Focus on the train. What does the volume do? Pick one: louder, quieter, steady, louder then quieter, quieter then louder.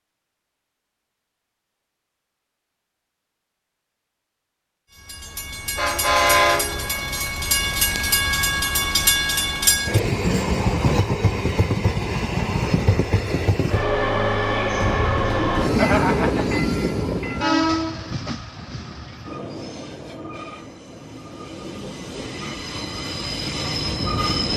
quieter.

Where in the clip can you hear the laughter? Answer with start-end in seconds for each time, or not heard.
15.8-16.6.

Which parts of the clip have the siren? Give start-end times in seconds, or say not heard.
not heard.